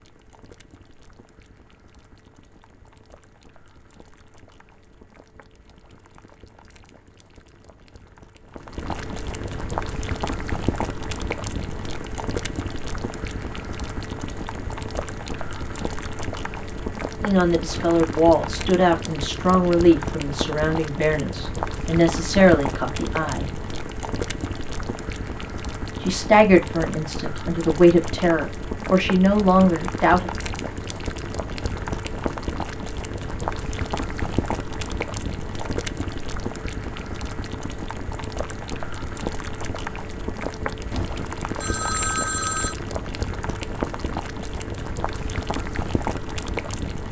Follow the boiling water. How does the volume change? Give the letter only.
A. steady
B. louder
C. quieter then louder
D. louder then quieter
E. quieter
B.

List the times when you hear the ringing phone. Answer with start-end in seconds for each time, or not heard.
40.9-42.8.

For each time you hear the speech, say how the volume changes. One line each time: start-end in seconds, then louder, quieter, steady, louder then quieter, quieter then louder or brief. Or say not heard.
17.2-23.6 steady
26.0-30.3 quieter then louder.